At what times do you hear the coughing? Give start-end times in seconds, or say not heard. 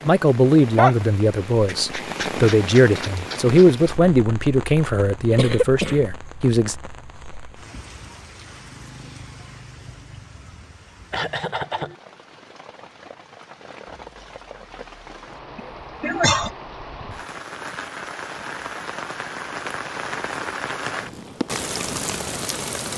5.3-6.0, 11.1-11.9, 15.6-16.5.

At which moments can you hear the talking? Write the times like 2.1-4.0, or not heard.
0.1-6.8.